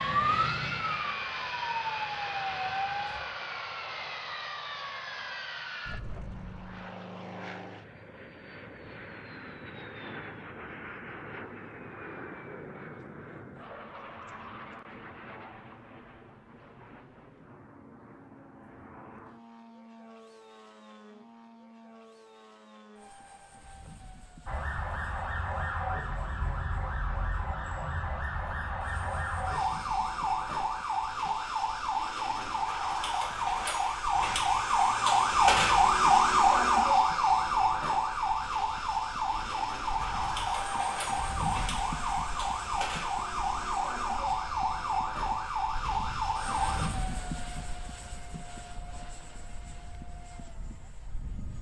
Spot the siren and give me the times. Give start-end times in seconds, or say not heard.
0.0-3.2, 24.4-46.9.